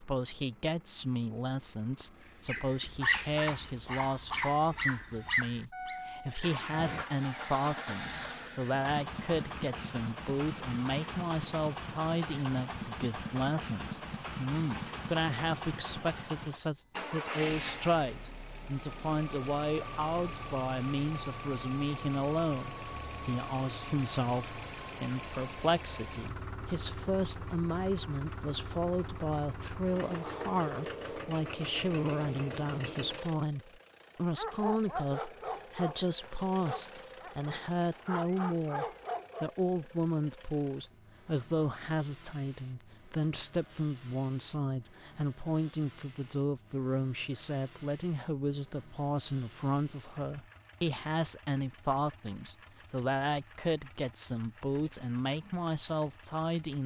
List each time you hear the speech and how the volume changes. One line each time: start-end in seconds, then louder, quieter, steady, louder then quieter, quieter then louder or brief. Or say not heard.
0.0-56.8 steady.